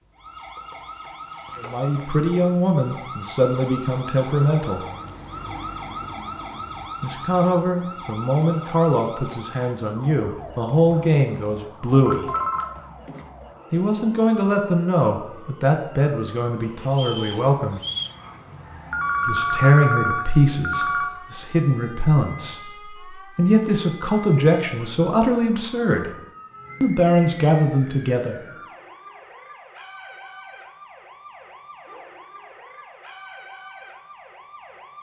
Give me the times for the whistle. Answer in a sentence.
You can hear the whistle from 16.9 to 18.1 s.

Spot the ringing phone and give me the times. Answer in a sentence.
You can hear the ringing phone from 12.1 to 13.2 s and from 18.9 to 21.1 s.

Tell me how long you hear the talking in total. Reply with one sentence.
You can hear the talking for 21 seconds altogether.